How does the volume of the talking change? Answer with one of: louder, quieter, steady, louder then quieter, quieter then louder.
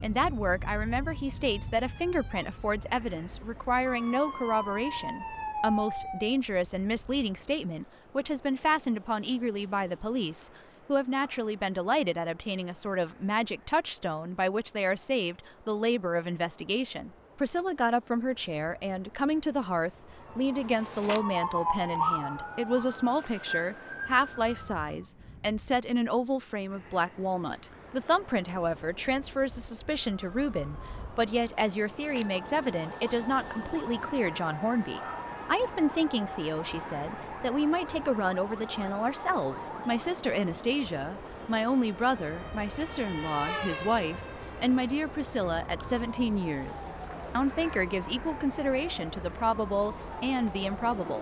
steady.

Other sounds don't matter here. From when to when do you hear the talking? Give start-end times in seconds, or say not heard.
0.0-51.1.